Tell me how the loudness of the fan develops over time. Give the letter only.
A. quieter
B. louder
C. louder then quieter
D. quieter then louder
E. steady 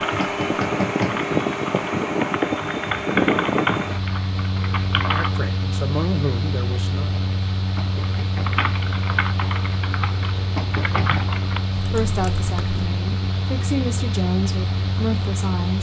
A.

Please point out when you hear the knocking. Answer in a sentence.
You can hear the knocking from 0.1 to 1.2 s, from 7.8 to 8.6 s and from 10.6 to 11.2 s.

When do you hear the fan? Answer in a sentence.
The fan can be heard from 0.0 to 15.7 s.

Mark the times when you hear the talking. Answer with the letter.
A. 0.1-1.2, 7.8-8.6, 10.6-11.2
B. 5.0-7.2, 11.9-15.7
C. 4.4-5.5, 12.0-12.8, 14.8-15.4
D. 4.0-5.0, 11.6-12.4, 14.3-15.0
B.